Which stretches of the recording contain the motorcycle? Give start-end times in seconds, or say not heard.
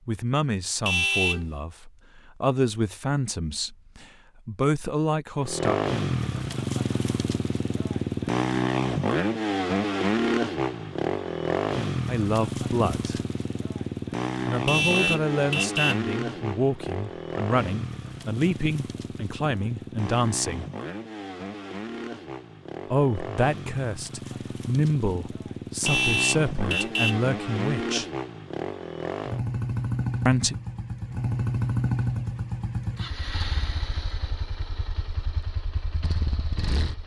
5.4-37.0.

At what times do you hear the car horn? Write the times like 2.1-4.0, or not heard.
0.8-1.4, 14.7-16.1, 25.9-27.2.